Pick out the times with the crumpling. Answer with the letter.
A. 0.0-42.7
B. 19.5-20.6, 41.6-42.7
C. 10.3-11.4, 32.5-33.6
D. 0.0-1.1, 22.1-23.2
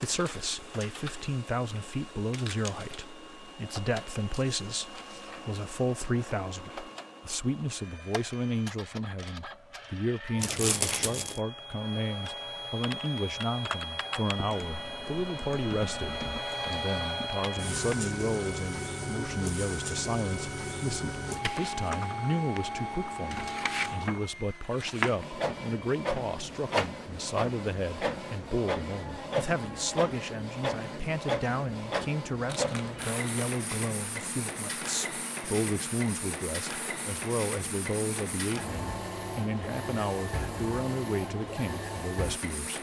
C.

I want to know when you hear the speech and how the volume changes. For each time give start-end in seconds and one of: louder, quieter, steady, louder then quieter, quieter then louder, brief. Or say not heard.
0.0-42.7 steady.